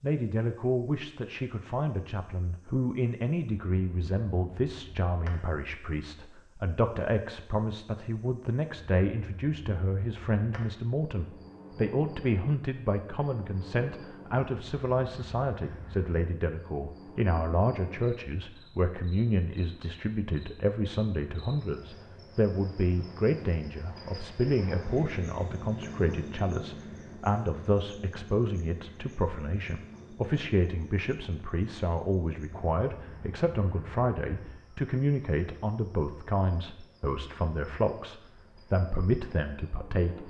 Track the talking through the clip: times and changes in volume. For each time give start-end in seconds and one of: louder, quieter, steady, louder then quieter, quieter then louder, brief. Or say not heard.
0.0-40.2 steady.